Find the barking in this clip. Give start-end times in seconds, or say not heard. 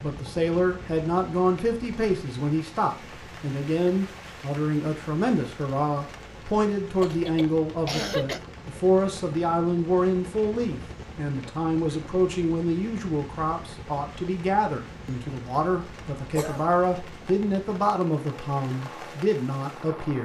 not heard.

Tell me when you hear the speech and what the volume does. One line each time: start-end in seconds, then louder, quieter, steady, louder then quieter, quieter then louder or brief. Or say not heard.
0.0-20.2 steady.